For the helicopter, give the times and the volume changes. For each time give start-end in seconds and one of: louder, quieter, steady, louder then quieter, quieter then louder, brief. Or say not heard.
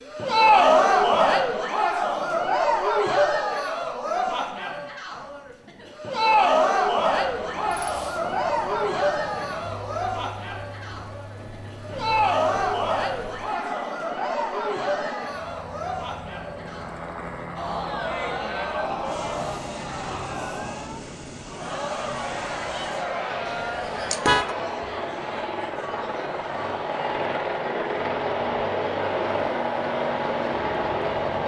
7.2-31.4 louder.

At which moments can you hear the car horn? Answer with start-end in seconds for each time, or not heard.
23.4-24.6.